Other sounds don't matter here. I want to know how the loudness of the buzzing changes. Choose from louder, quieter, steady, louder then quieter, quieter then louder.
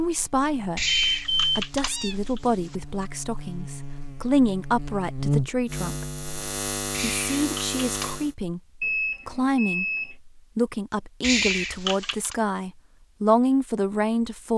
louder.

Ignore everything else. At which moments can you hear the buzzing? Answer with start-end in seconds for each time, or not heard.
0.0-8.3.